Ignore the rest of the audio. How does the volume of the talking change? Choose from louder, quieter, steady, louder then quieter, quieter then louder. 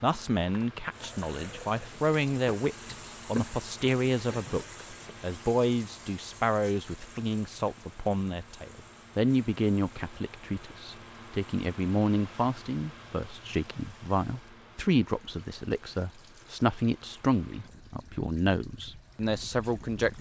steady.